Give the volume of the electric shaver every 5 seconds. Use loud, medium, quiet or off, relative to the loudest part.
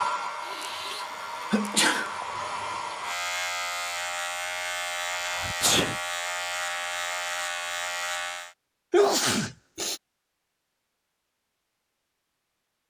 loud, loud, off.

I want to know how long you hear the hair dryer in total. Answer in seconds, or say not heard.
3 s.